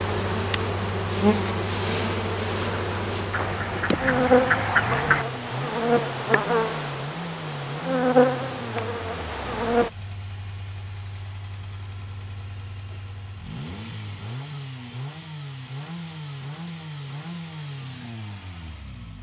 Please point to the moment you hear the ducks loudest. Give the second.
5 s.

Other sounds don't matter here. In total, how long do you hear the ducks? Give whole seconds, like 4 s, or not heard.
2 s.